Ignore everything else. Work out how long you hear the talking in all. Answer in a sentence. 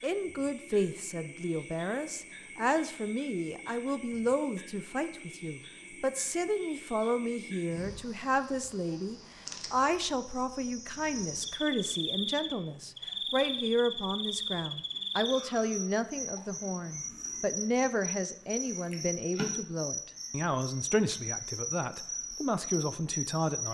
The talking can be heard for 24 seconds in total.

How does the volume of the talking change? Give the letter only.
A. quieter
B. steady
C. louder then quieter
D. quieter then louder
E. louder
B.